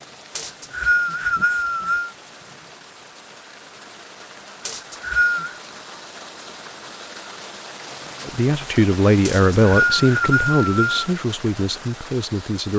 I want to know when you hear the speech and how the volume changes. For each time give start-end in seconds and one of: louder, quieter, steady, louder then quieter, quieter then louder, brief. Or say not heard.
8.2-12.7 quieter.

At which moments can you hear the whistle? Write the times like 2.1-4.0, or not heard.
0.3-2.1, 4.7-5.5, 9.2-11.0.